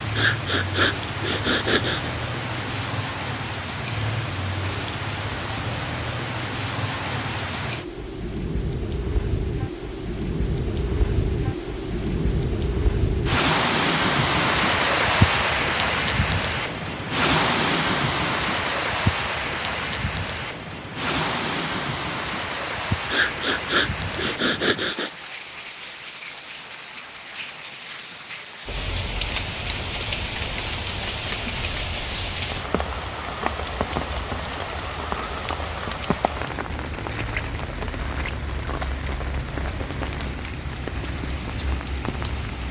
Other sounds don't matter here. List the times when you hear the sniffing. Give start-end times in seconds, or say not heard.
0.1-2.1, 23.1-25.1.